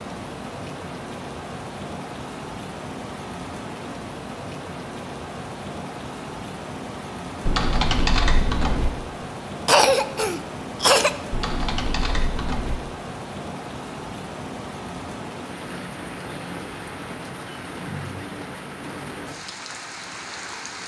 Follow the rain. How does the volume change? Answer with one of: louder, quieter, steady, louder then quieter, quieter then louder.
steady.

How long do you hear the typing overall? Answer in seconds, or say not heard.
3 s.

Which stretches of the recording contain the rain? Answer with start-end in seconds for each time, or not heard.
0.0-20.8.